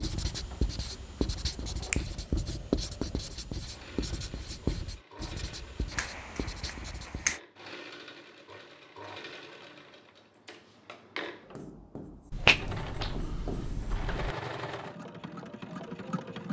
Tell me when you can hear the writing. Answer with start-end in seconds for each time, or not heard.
0.0-7.3, 11.4-13.9.